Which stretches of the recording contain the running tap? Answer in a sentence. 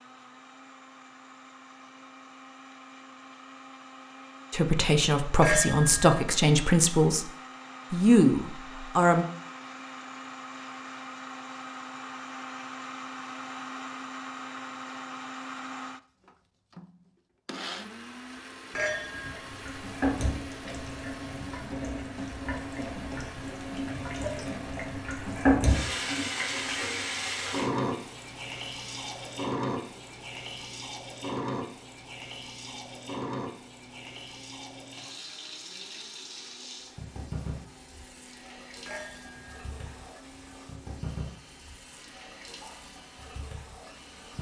The running tap can be heard from 19.2 to 44.3 s.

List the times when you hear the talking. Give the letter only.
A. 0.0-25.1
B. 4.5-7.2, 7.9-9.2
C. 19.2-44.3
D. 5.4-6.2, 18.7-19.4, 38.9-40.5
B.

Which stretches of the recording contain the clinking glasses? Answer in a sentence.
The clinking glasses can be heard from 5.4 to 6.2 s, from 18.7 to 19.4 s and from 38.9 to 40.5 s.